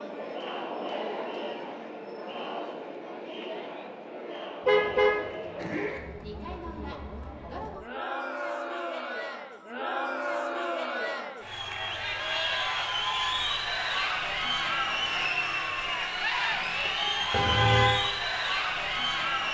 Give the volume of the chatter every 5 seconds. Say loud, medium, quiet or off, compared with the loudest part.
medium, medium, loud, loud.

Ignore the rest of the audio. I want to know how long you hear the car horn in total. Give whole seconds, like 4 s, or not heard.
2 s.